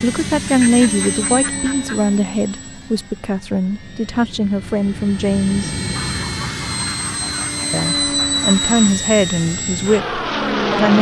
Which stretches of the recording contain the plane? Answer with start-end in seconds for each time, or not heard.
0.0-10.9.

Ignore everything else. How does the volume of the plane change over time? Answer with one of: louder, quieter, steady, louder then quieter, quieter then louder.
quieter then louder.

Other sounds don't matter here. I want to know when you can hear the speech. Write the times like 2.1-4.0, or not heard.
0.0-5.7, 7.7-10.9.